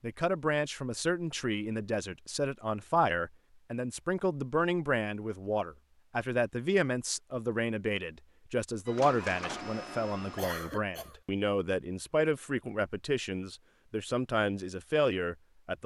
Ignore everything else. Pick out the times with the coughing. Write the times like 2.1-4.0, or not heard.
10.3-11.2.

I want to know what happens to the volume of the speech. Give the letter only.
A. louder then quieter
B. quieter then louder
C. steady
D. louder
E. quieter
C.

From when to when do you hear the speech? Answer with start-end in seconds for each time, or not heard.
0.0-15.8.